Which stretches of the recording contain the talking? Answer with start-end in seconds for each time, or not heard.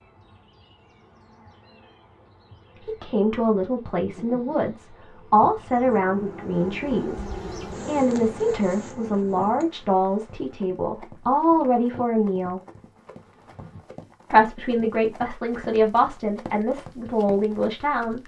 2.9-12.6, 14.3-18.2.